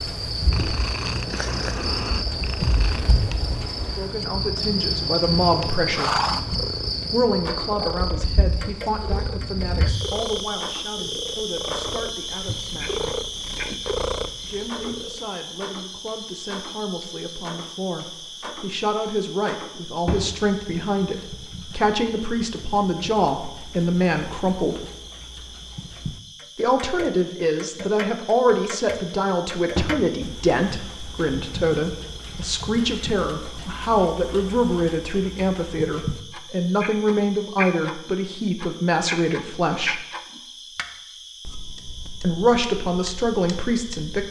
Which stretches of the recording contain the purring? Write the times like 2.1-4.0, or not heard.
0.0-15.2.